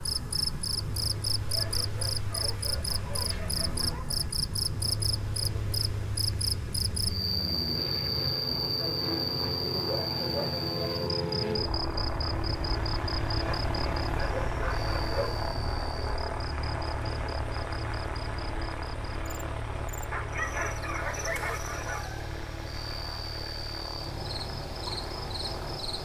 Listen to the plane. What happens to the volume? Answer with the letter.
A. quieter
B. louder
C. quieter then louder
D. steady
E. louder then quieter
E.